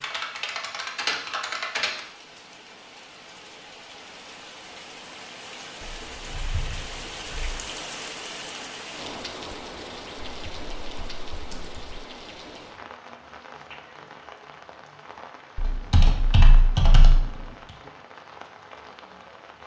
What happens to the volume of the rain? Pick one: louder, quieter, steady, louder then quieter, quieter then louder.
louder then quieter.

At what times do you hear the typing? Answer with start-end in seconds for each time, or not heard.
0.0-2.0, 5.8-7.7, 10.2-12.0, 15.6-17.4.